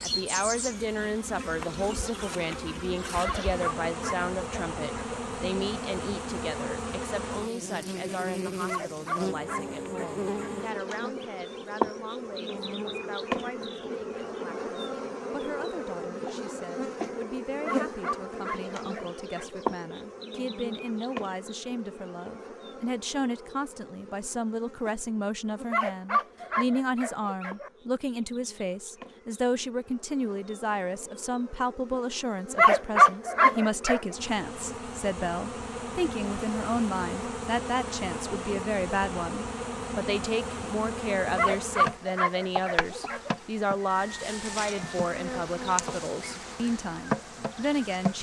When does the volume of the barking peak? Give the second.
33 s.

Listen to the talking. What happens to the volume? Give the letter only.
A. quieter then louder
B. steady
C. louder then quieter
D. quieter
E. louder
A.